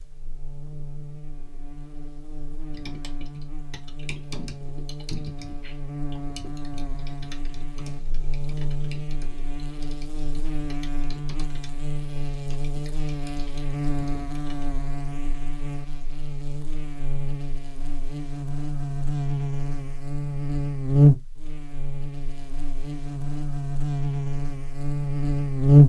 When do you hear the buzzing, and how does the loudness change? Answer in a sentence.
You can hear the buzzing from 0.0 to 25.8 s, getting louder.